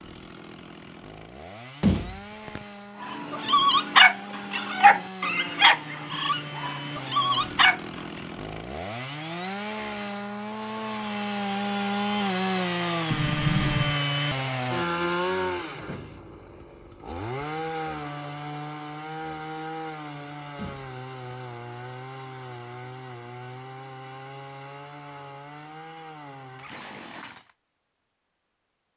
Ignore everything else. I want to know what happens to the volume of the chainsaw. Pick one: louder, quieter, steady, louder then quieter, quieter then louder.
louder then quieter.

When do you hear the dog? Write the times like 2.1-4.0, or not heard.
3.0-8.0.